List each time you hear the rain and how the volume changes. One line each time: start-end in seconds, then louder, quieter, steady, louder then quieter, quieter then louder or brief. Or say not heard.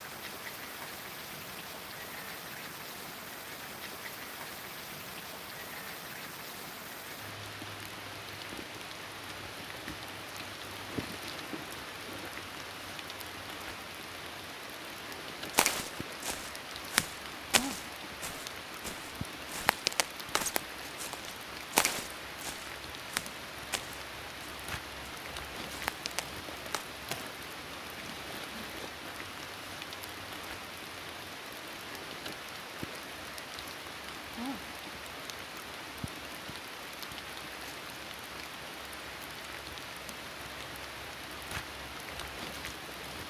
0.0-43.2 steady.